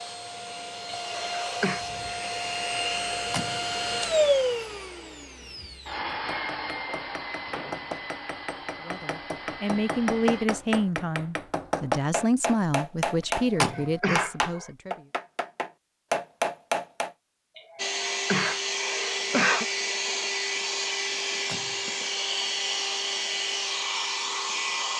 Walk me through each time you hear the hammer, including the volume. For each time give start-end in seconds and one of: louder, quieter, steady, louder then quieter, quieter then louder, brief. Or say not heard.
6.1-17.1 louder.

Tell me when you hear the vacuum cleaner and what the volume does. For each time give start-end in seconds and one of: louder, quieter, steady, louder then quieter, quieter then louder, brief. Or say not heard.
0.0-10.5 louder then quieter
17.8-24.9 steady.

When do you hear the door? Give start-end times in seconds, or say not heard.
3.0-3.7, 13.2-13.9, 21.1-21.9.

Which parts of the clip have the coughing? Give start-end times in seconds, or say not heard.
0.9-1.9, 13.4-14.7, 17.6-19.6.